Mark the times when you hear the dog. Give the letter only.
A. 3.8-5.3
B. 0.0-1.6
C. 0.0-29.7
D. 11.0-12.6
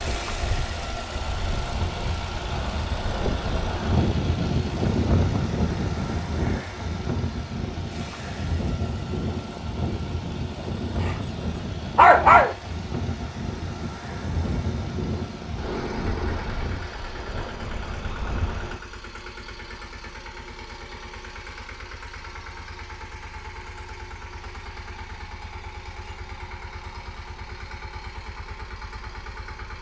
D.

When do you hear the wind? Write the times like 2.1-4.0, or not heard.
0.0-18.8.